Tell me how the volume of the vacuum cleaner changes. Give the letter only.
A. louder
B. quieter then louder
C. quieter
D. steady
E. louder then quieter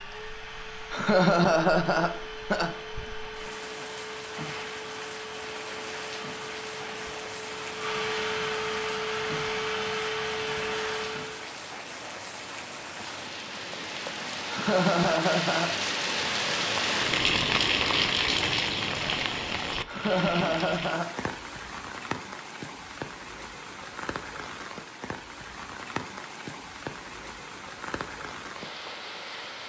A.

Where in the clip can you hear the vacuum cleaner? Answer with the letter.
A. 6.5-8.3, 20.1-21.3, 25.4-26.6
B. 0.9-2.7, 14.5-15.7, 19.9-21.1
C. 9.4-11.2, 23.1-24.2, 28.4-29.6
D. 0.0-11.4
D.